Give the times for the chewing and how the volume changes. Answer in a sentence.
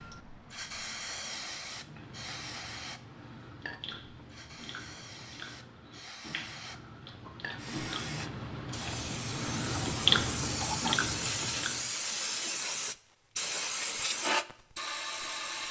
The chewing can be heard from 1.6 to 11.9 s, getting louder.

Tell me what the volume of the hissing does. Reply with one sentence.
The loudness of the hissing goes down, then up.